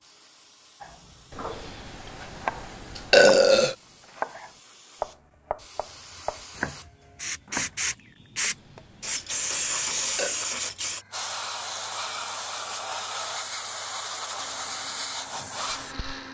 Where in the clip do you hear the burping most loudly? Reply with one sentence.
The loudest moment of the burping is at 3 seconds.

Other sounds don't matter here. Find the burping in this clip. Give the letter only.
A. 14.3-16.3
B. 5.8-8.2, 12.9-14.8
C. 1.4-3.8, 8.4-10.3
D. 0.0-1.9
C.